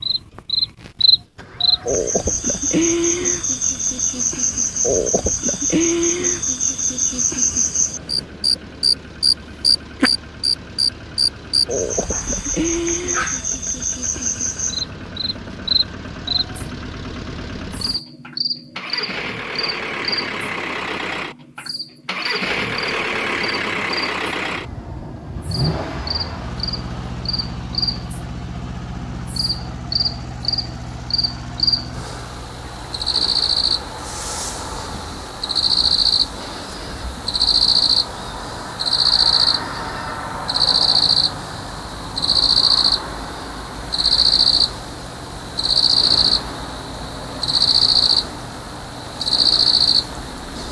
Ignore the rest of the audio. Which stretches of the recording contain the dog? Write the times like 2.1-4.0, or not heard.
11.9-13.4.